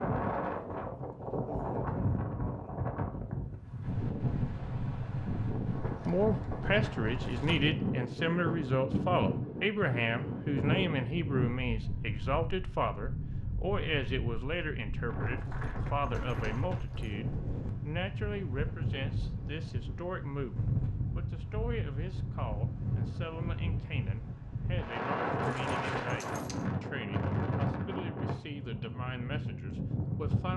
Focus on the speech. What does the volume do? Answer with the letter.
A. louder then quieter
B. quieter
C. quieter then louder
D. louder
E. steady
B.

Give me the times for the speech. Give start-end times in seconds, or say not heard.
6.0-30.5.